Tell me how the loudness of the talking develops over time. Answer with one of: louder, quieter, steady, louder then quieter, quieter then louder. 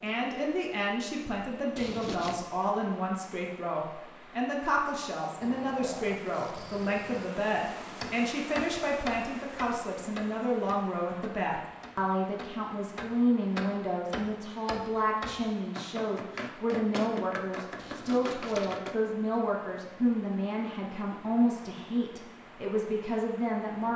steady.